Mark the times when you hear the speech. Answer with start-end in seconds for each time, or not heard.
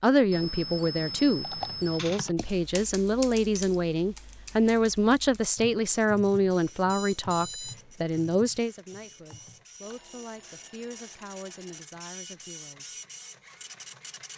0.0-12.9.